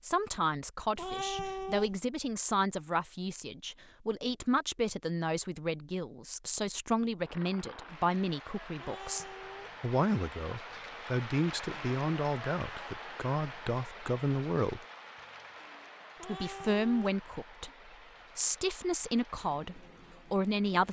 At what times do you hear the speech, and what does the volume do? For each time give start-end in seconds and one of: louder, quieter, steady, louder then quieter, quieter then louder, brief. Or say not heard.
0.0-14.8 steady
16.2-17.7 brief
18.4-20.8 brief.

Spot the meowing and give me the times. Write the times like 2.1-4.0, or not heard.
0.9-2.0, 8.8-9.8, 16.1-17.2.